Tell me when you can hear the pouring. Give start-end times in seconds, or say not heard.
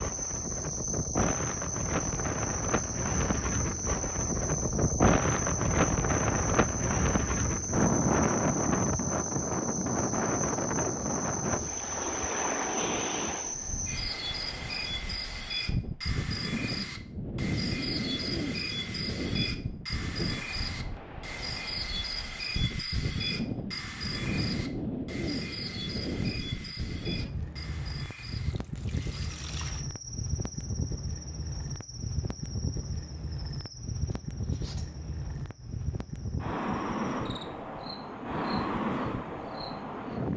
28.3-29.9.